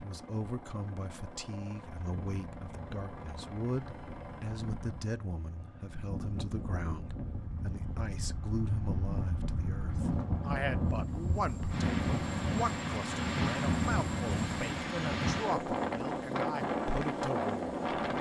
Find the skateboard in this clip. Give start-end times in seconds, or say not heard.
not heard.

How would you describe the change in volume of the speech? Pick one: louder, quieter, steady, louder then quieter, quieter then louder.
steady.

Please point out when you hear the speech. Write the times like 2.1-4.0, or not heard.
0.0-18.1.